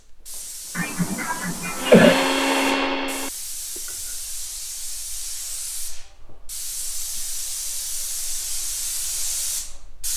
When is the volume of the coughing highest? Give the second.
2 s.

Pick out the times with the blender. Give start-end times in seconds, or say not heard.
1.8-4.0.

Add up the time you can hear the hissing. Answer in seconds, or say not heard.
10 s.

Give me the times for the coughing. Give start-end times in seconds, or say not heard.
0.8-2.2.